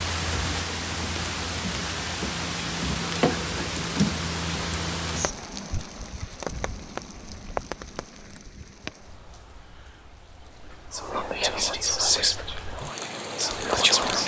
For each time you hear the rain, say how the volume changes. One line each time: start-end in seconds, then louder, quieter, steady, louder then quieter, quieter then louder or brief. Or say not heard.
0.0-14.2 quieter then louder.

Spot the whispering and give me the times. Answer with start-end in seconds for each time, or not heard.
10.9-14.2.